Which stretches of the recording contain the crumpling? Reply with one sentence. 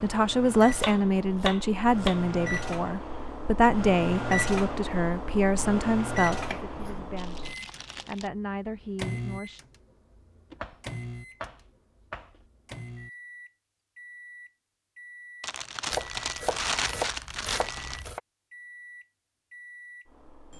The crumpling can be heard from 7.2 to 8.3 s and from 15.4 to 18.1 s.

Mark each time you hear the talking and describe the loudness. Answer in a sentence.
You can hear the talking from 0.0 to 9.6 s, getting quieter.